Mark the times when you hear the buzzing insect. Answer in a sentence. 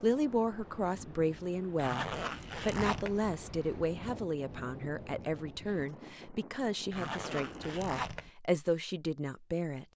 You can't hear the buzzing insect here.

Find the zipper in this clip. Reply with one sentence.
You can hear the zipper from 1.8 to 3.2 s and from 6.9 to 8.3 s.